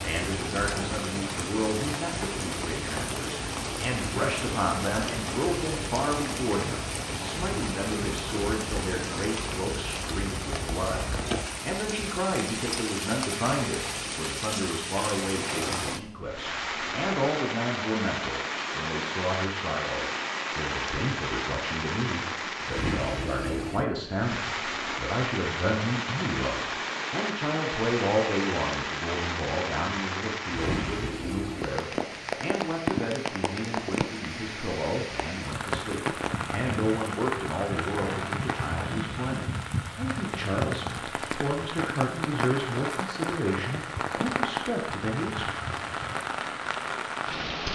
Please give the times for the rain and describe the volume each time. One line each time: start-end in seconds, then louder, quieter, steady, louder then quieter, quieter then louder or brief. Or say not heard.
0.0-47.7 steady.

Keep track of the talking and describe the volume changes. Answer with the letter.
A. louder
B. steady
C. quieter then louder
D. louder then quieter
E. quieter
B.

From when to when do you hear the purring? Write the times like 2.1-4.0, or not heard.
not heard.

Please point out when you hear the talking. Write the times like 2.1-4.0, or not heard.
0.0-45.5.